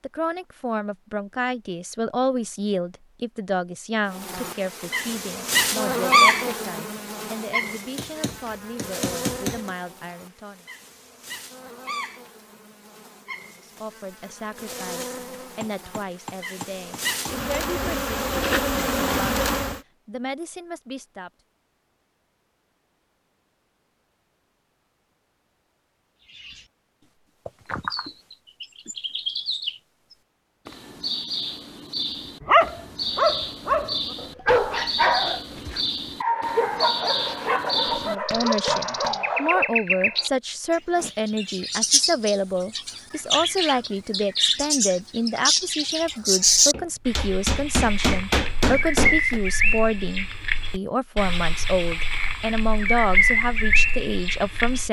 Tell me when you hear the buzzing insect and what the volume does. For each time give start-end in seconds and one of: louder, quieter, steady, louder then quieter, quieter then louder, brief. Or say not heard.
4.2-19.8 quieter then louder.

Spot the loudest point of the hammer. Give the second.
48 s.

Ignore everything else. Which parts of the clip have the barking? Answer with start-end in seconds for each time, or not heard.
32.4-39.7.